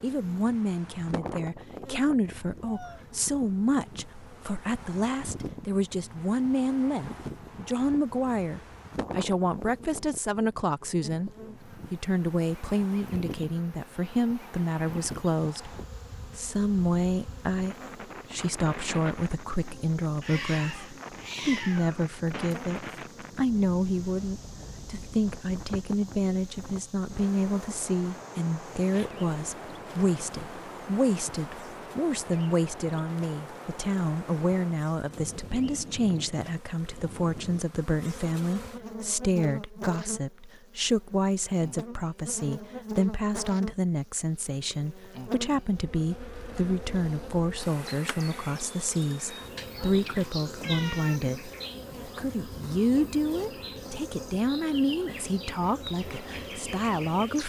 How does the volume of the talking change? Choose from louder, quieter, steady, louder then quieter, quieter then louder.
steady.